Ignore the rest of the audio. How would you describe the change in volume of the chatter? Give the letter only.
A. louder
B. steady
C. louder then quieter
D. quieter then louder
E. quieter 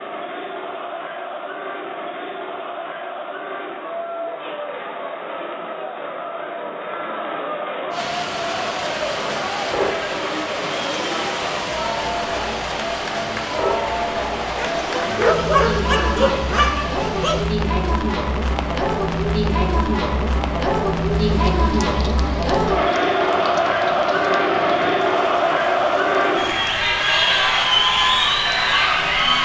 A.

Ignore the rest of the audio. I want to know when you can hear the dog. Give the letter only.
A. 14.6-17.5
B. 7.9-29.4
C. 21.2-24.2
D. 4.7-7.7
A.